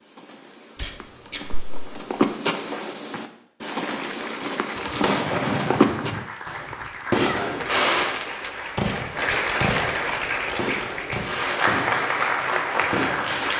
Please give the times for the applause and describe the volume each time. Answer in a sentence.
You can hear the applause from 3.6 to 13.5 s, getting louder.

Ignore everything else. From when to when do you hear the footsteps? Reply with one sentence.
The footsteps can be heard from 0.0 to 6.2 s.